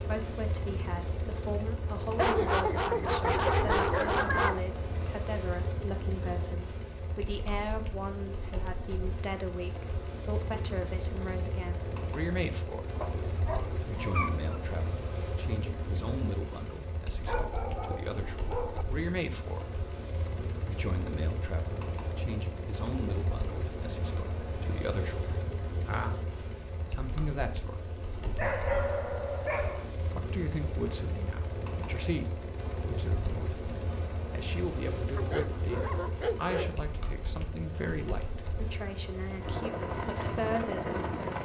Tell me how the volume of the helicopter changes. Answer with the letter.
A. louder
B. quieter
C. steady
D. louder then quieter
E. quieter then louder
C.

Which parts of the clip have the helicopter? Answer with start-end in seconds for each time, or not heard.
0.0-41.4.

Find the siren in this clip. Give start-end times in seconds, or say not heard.
not heard.